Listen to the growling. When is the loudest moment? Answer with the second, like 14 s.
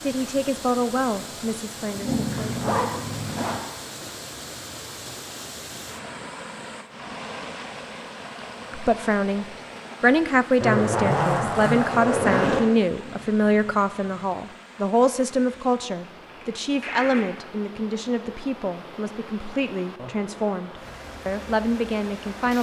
2 s.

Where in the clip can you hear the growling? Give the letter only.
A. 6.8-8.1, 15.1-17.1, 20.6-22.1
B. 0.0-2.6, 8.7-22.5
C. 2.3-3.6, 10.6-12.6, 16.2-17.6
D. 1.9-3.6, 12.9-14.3
D.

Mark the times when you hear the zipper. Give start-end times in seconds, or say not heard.
2.3-3.6, 10.6-12.6, 16.2-17.6.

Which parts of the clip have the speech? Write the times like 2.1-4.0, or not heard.
0.0-2.6, 8.7-22.5.